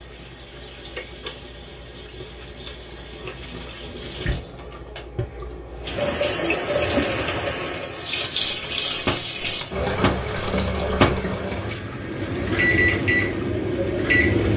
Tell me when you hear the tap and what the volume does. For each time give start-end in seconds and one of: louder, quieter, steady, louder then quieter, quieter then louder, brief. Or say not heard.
0.0-14.5 louder then quieter.